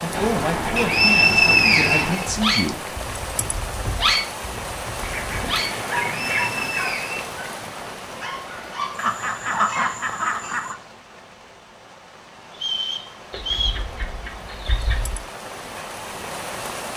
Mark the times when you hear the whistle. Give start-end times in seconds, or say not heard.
0.8-2.7, 6.2-7.3, 12.5-13.8.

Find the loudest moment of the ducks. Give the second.
10 s.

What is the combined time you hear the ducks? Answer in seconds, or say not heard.
8 s.